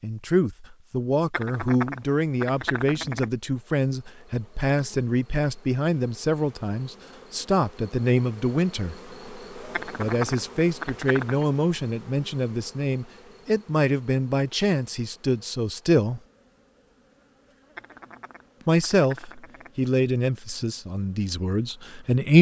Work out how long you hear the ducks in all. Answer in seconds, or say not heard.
6 s.